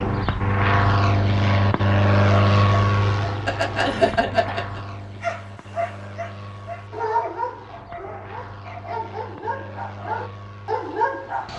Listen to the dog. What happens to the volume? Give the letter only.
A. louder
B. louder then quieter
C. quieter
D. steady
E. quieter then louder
E.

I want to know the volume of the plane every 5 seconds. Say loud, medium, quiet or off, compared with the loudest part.
loud, quiet, quiet.